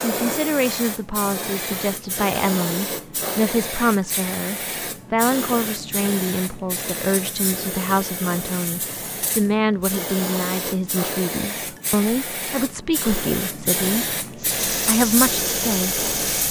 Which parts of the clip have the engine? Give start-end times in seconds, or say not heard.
14.3-16.4.